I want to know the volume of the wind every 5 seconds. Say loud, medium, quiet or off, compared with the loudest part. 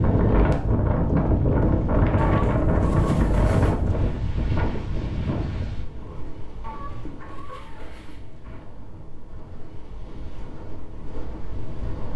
loud, quiet, quiet.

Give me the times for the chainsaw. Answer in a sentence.
The chainsaw can't be heard in this clip.